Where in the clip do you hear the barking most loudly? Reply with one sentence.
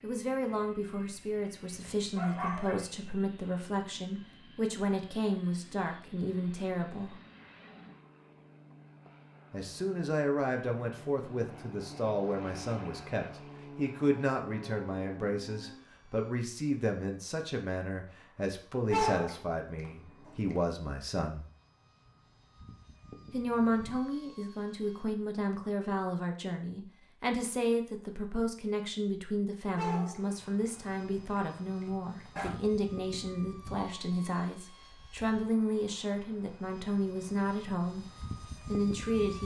The volume of the barking peaks at 19 seconds.